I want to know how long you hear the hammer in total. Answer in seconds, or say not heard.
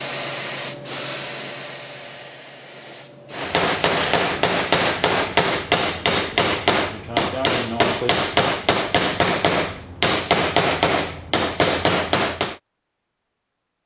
9 s.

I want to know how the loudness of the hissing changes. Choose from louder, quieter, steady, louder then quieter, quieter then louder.
quieter then louder.